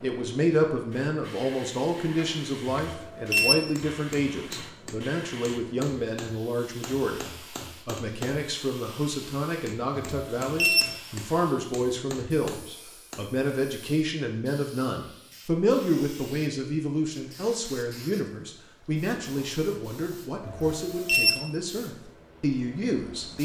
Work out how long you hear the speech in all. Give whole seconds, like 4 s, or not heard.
23 s.